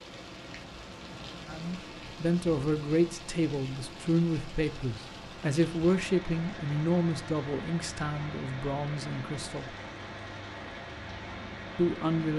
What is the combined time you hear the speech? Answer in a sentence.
You can hear the speech for 9 seconds altogether.